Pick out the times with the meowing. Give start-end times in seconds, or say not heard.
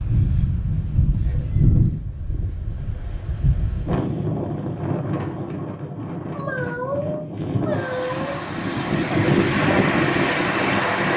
1.2-2.7, 6.3-8.3.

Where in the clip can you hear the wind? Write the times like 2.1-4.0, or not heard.
0.0-11.1.